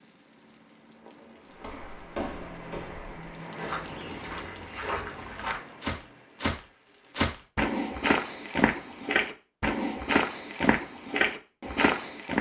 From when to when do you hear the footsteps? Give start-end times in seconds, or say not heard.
1.6-12.3.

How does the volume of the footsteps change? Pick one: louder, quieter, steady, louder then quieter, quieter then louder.
louder.